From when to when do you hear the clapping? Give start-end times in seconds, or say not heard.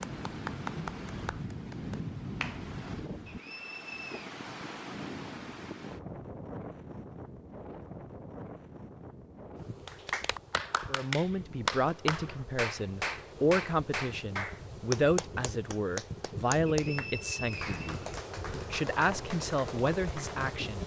0.0-2.6, 9.8-20.7.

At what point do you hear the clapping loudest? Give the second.
12 s.